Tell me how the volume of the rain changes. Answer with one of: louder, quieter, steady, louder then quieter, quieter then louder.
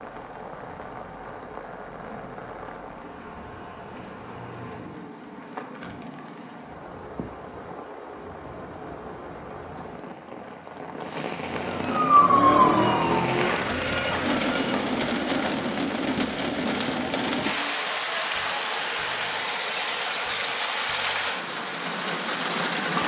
louder.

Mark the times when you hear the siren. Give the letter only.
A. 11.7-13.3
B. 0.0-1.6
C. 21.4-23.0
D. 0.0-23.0
A.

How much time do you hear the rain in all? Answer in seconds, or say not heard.
23 s.